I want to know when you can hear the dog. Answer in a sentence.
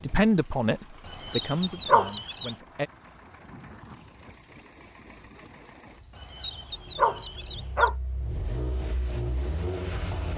You can hear the dog from 1.1 to 2.5 s and from 6.2 to 8.0 s.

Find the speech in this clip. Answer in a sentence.
You can hear the speech from 0.0 to 2.9 s.